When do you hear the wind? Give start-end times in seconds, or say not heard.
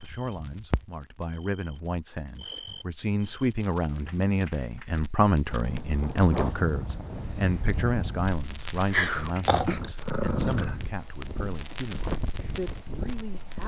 5.5-13.6.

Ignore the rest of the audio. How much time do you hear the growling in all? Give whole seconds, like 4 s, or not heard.
2 s.